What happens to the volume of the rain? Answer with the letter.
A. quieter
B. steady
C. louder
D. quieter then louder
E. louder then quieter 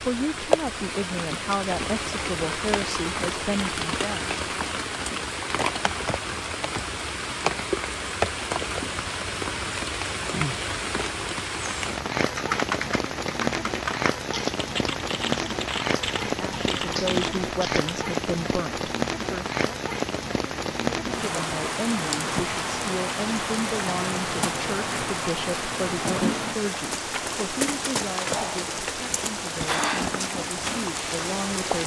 B.